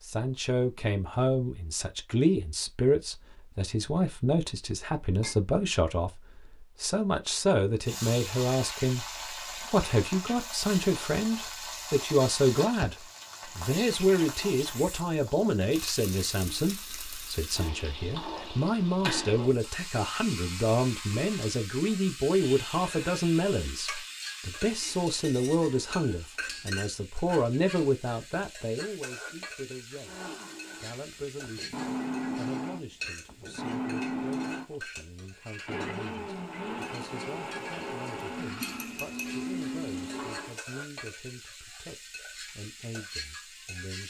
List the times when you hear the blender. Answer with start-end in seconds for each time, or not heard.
30.0-40.6.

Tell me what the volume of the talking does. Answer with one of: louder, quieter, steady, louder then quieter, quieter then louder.
quieter.